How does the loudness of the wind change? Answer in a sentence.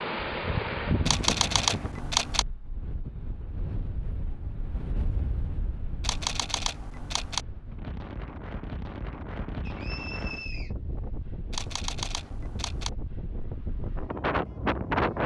The loudness of the wind goes down, then up.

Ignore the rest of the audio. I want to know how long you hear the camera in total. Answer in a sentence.
You can hear the camera for 4 seconds altogether.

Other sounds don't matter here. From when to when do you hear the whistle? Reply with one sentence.
You can hear the whistle from 9.7 to 10.7 s.